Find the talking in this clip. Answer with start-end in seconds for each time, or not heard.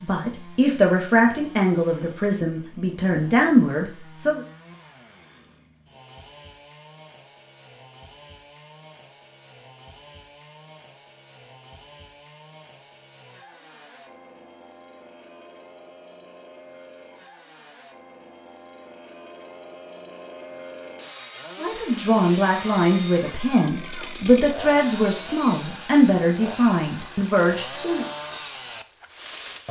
0.0-4.4, 21.6-28.1.